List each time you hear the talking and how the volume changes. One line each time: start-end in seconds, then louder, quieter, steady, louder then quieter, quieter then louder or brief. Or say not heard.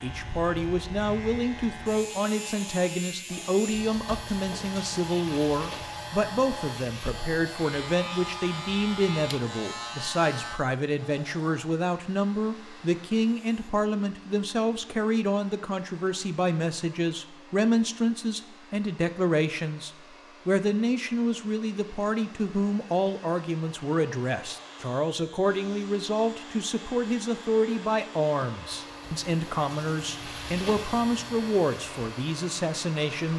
0.0-33.3 steady.